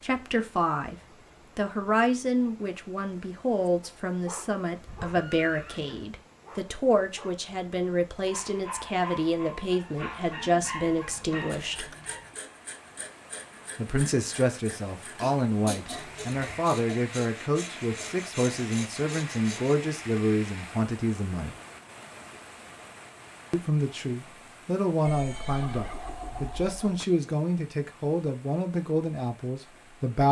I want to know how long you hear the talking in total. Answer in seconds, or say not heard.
26 s.